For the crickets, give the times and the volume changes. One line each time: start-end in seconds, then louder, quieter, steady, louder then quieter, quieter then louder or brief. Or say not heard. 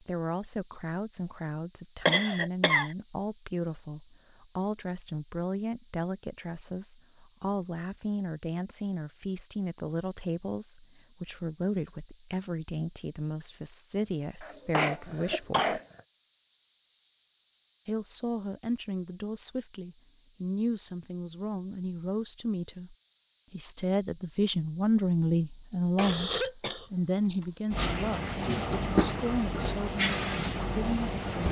0.0-31.4 steady.